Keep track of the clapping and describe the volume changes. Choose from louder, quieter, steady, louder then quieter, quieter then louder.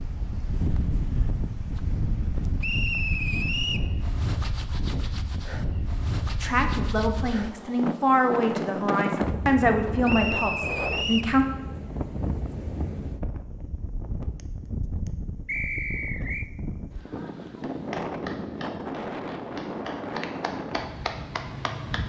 quieter then louder.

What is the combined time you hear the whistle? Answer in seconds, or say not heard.
4 s.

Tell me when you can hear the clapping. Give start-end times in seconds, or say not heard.
17.6-22.0.